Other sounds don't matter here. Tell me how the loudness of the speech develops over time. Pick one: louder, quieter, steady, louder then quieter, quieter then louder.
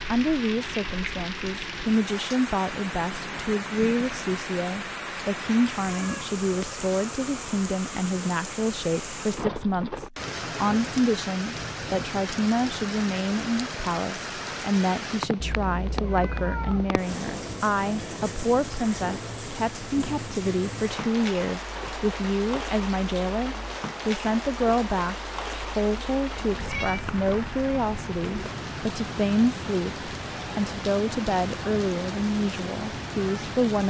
steady.